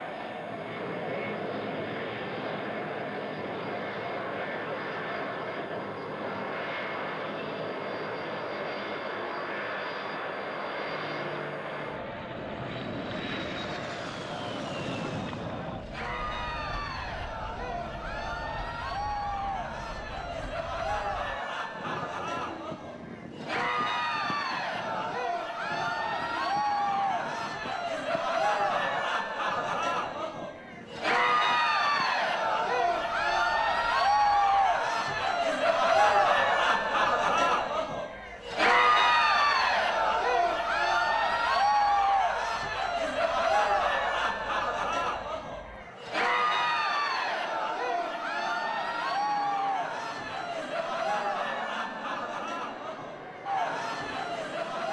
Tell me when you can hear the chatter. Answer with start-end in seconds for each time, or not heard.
0.0-54.8.